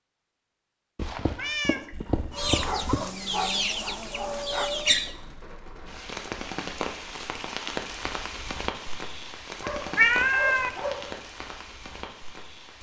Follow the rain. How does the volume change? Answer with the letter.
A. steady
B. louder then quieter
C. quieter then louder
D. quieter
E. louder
B.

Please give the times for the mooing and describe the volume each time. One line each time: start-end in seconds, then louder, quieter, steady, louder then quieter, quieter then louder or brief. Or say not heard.
not heard.